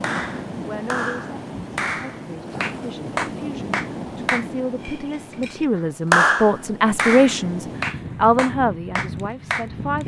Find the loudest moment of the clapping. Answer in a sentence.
The loudest moment of the clapping is at 6 seconds.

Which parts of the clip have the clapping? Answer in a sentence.
The clapping can be heard from 0.0 to 10.0 s.